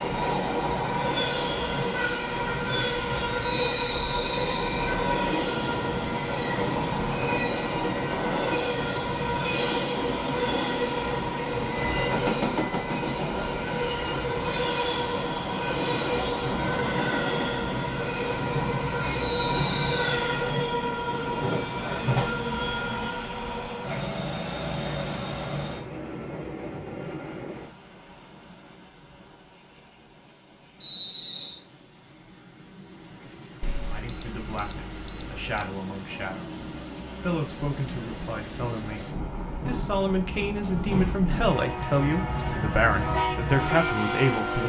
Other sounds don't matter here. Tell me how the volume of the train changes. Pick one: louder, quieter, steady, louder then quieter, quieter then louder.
quieter then louder.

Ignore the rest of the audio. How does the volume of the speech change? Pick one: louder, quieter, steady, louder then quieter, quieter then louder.
louder.